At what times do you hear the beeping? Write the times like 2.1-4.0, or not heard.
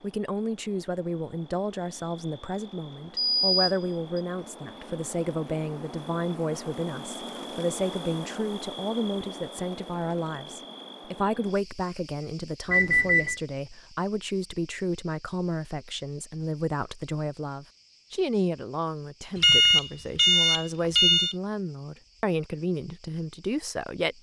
3.1-4.2, 12.7-13.4, 19.4-21.4.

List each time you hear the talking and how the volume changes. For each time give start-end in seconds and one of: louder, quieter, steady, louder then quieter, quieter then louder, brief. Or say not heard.
0.0-24.1 steady.